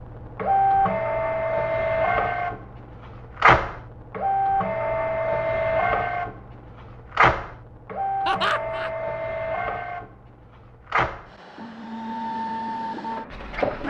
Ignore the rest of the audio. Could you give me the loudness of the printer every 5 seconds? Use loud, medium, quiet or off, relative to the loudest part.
loud, loud, medium.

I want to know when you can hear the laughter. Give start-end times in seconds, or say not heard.
8.2-8.9.